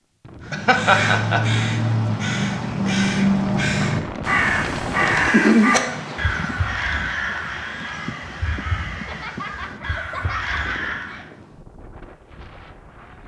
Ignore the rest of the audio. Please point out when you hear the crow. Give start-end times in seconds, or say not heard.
0.5-11.2.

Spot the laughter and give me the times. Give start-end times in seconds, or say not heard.
0.5-1.4, 5.3-6.0, 8.9-11.2.